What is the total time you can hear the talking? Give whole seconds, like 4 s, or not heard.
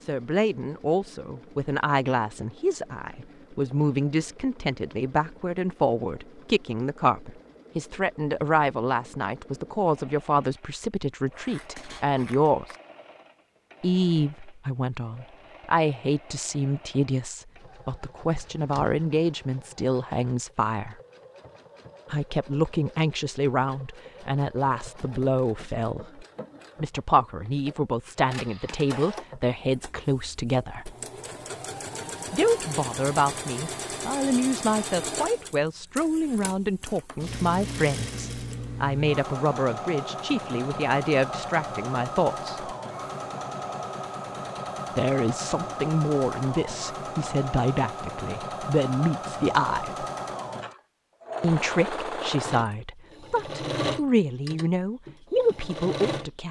49 s.